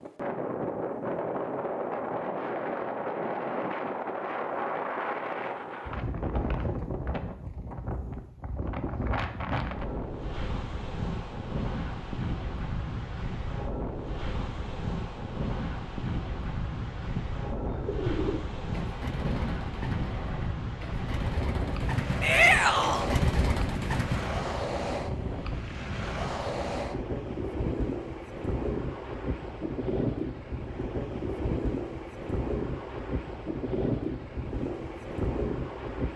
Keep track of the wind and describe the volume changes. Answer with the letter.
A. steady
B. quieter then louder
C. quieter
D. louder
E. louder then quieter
A.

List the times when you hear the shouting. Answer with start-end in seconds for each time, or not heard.
22.2-23.1.